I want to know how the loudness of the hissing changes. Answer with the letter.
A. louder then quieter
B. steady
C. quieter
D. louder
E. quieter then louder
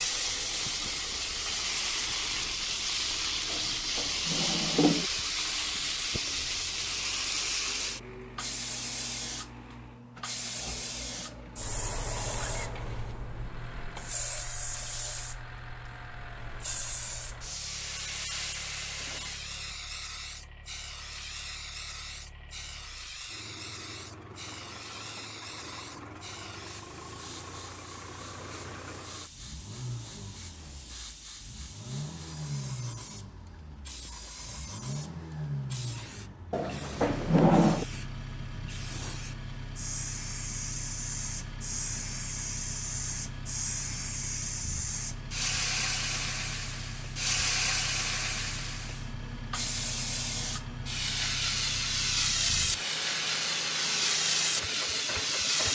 E.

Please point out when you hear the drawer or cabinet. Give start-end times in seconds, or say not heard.
3.5-5.0, 36.5-37.9.